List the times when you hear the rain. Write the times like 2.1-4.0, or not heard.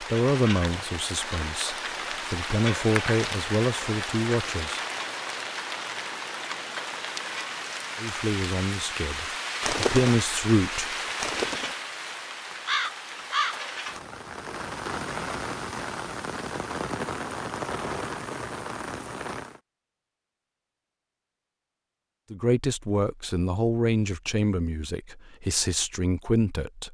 0.0-19.6.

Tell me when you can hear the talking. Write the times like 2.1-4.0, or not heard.
0.0-4.8, 8.0-10.9, 22.3-26.9.